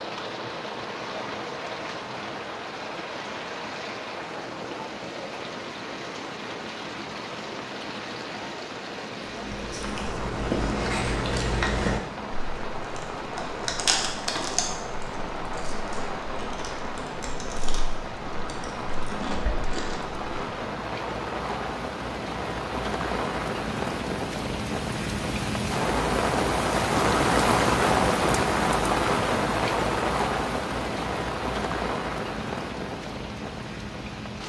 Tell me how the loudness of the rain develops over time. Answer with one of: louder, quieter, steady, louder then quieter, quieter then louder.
louder.